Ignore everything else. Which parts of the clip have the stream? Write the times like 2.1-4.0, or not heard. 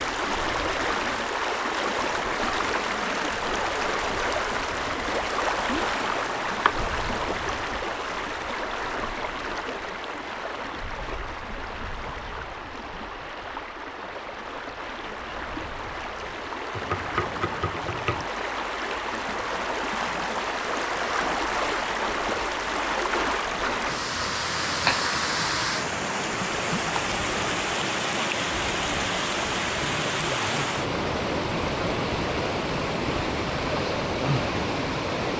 0.0-35.3.